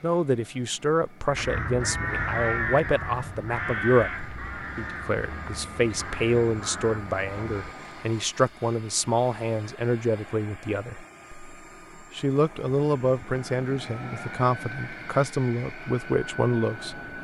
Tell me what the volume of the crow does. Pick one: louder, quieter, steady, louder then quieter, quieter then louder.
quieter.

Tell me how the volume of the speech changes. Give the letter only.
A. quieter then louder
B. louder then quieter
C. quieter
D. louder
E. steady
E.